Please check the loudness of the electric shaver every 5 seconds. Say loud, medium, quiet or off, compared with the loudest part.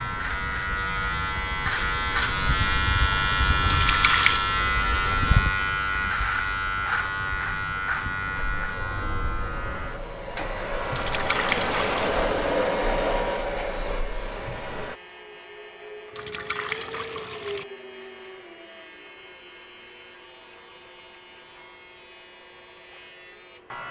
loud, loud, quiet, quiet, quiet.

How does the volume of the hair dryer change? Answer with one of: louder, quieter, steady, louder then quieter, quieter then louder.
louder then quieter.